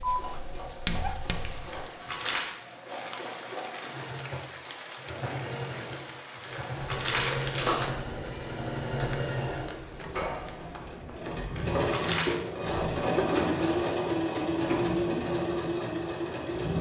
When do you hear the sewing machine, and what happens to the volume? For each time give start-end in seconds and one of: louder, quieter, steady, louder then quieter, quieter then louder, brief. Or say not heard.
0.0-16.7 louder.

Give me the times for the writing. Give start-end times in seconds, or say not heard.
0.0-1.8.